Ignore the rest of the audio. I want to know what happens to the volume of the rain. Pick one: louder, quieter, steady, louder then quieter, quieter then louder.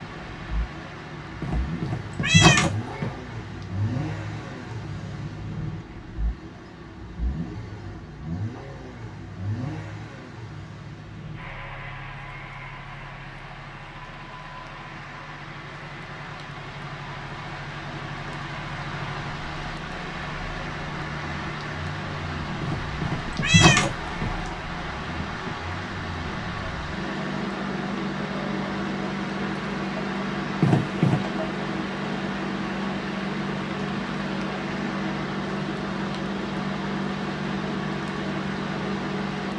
louder.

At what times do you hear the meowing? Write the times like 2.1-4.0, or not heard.
1.4-3.1, 22.6-24.5, 30.6-31.2.